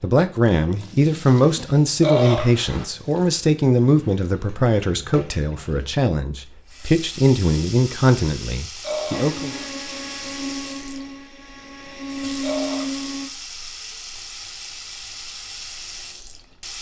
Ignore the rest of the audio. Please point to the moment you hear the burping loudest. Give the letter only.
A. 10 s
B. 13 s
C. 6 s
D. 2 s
D.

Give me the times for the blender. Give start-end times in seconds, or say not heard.
9.1-13.3.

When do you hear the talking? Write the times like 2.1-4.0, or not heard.
0.0-9.5.